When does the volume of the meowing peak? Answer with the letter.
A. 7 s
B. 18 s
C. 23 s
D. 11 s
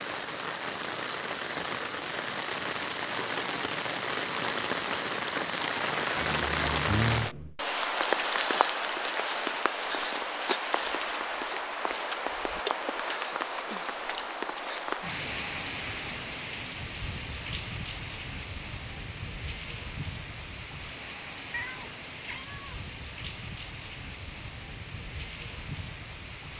A.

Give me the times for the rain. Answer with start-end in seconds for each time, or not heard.
0.0-26.5.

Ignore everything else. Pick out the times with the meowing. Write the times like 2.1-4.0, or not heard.
6.2-7.5, 21.5-22.9.